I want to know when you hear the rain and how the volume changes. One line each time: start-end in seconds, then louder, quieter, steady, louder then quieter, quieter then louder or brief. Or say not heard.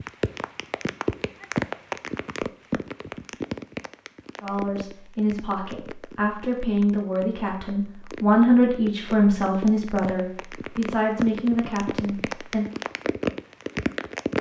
0.0-14.3 quieter then louder.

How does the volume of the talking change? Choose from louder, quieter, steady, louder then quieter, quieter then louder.
louder then quieter.